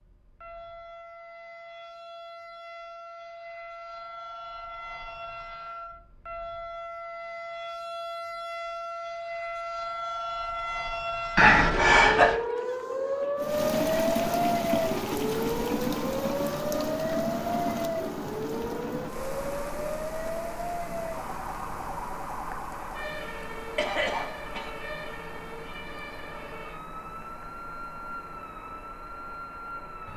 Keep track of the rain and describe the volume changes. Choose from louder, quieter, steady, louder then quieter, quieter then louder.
quieter.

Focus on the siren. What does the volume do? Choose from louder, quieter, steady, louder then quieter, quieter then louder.
louder then quieter.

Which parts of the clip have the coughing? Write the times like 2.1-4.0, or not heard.
11.3-12.3, 23.8-24.7.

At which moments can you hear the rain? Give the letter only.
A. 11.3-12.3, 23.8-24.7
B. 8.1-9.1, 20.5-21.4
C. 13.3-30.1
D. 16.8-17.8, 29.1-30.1
C.